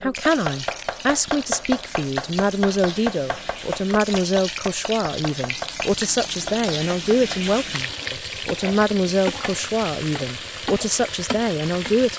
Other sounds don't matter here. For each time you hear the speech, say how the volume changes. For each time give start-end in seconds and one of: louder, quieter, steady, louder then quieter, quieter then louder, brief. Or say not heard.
0.0-12.1 steady.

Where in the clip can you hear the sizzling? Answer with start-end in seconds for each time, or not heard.
0.0-12.1.